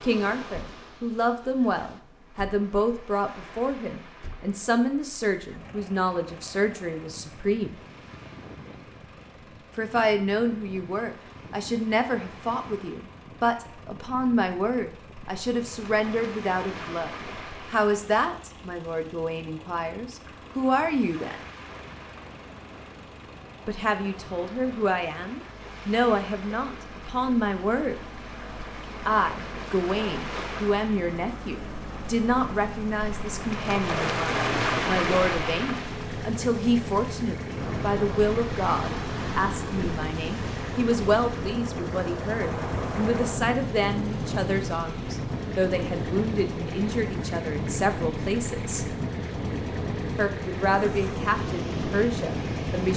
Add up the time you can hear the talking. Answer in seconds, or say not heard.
46 s.